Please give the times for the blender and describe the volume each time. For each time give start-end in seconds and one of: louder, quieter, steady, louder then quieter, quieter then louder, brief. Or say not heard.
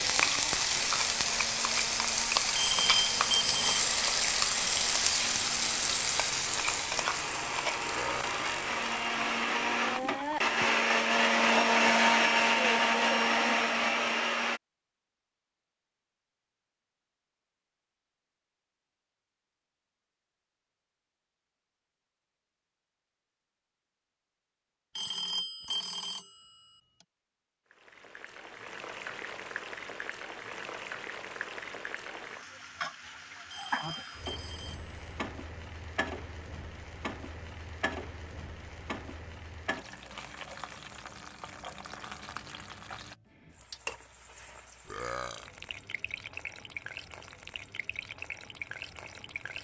0.0-14.6 louder.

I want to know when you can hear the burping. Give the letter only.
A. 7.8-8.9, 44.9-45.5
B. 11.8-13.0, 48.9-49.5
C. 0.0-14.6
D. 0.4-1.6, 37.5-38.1
A.